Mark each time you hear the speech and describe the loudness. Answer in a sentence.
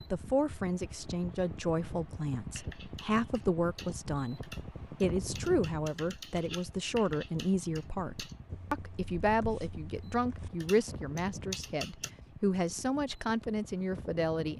The speech can be heard from 0.1 to 14.5 s, at a steady volume.